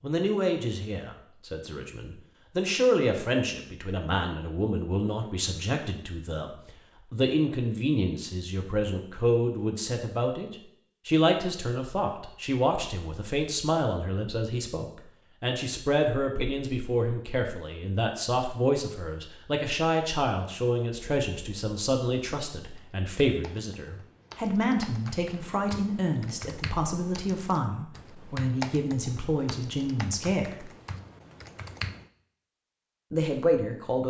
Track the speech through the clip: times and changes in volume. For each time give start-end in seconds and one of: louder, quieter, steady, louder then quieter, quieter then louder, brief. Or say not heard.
0.0-30.6 steady
33.1-34.0 brief.